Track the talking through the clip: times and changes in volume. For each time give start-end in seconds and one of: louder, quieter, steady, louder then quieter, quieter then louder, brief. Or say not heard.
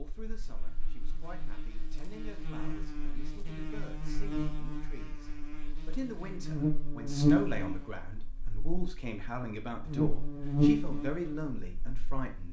0.0-12.4 louder.